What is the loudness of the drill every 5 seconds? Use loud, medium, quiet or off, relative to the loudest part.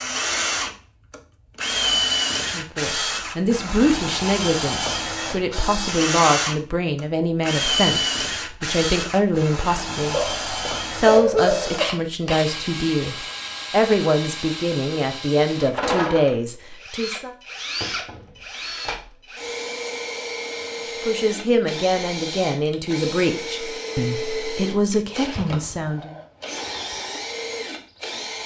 loud, loud, medium, medium, medium, medium.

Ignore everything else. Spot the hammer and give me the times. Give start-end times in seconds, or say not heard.
not heard.